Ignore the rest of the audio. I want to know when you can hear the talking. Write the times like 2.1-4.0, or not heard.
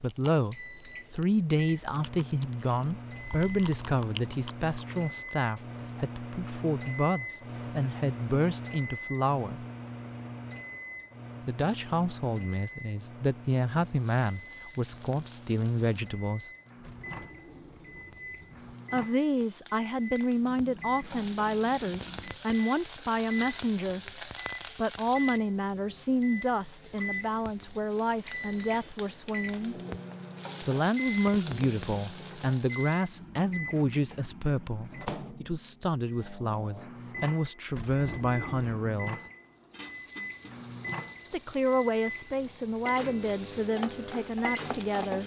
0.0-9.7, 11.4-16.5, 18.9-29.8, 30.6-39.2, 41.2-45.2.